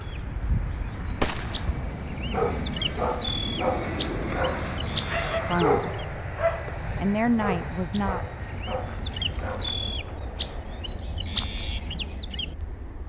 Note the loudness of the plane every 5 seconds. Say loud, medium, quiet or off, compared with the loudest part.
loud, loud, quiet.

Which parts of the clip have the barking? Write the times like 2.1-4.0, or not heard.
2.1-9.8.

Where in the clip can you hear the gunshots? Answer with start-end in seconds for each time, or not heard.
1.2-1.8.